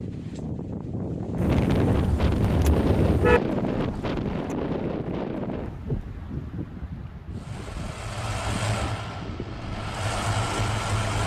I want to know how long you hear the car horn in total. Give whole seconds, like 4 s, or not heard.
2 s.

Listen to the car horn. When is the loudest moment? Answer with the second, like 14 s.
3 s.